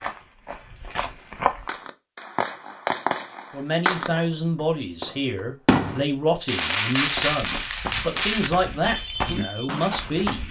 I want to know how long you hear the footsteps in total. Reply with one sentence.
You can hear the footsteps for 5 seconds altogether.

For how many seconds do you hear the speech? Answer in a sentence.
The speech can be heard for 7 seconds in total.